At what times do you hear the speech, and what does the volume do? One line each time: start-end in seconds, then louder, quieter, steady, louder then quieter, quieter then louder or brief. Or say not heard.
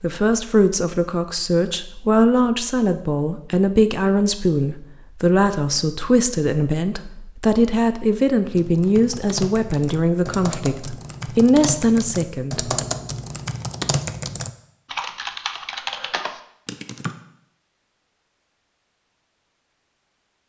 0.0-12.8 steady.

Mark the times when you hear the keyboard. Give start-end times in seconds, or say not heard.
8.4-17.1.